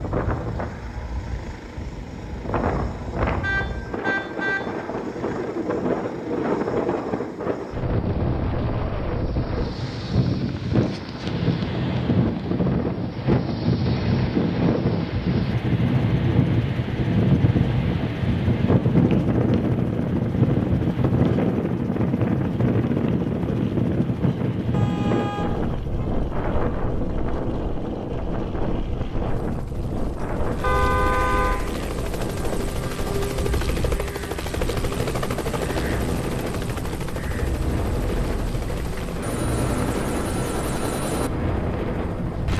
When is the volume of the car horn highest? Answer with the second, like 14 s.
31 s.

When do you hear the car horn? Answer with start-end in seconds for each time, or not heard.
3.4-4.6, 24.7-26.1, 30.6-31.6.